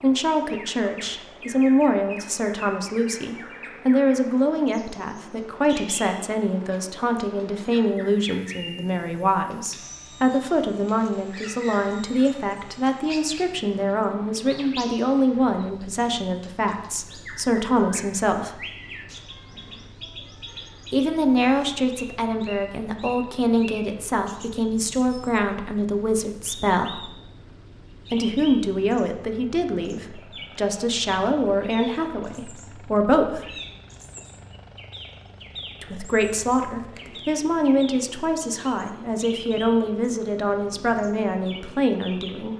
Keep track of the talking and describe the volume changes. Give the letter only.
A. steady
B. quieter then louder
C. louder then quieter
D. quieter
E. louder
A.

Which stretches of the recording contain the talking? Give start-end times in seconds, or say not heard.
0.0-18.6, 20.9-27.1, 28.1-33.5, 35.8-42.5.